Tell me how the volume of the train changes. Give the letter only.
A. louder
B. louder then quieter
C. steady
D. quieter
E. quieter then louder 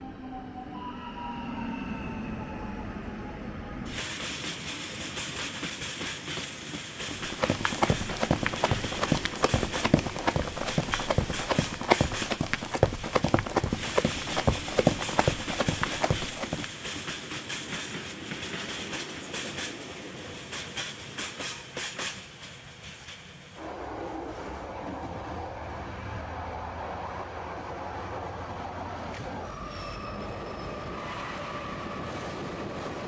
C.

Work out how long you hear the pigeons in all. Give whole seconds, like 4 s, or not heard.
not heard.